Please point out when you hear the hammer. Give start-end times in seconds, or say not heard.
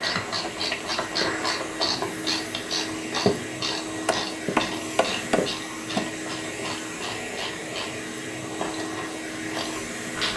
4.0-6.1.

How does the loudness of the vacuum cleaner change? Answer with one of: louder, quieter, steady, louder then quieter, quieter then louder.
steady.